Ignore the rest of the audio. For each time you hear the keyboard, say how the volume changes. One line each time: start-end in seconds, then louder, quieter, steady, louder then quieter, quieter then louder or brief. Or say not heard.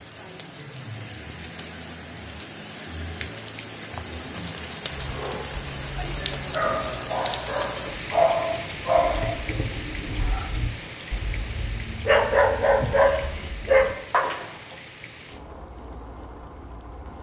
not heard.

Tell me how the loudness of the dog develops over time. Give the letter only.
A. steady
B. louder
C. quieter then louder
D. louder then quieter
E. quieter
C.